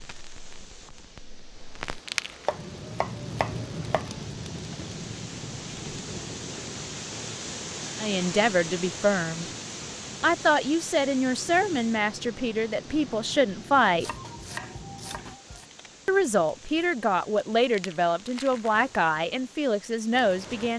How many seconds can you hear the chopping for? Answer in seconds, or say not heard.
3 s.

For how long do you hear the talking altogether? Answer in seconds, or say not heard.
10 s.